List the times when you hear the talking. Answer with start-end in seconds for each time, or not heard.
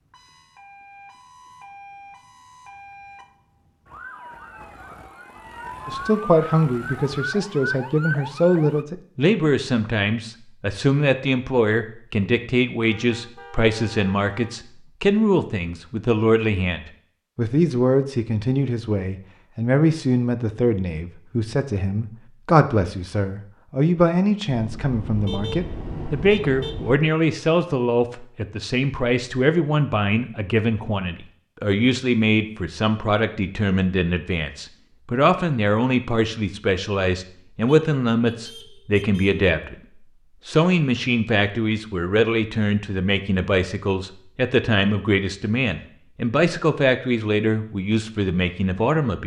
5.8-49.2.